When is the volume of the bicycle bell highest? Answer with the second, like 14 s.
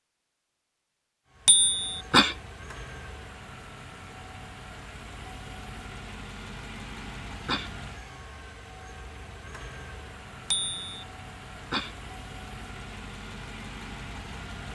2 s.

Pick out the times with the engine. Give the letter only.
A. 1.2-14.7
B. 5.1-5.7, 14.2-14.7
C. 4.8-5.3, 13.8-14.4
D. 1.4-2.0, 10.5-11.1
A.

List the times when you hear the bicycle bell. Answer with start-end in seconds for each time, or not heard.
1.4-2.0, 10.5-11.1.